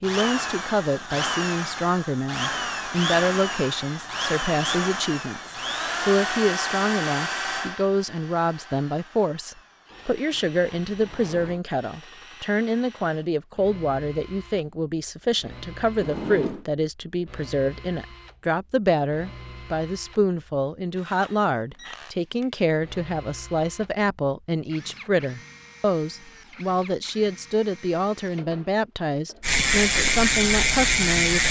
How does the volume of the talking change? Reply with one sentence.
The volume of the talking stays about the same.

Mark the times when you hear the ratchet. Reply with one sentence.
The ratchet can be heard from 29.4 to 31.4 s.